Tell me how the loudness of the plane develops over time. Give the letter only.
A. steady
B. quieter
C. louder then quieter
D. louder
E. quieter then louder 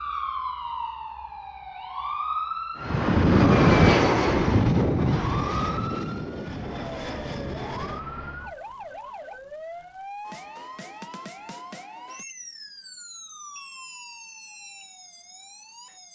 B.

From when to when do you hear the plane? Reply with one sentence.
The plane can be heard from 2.8 to 8.5 s.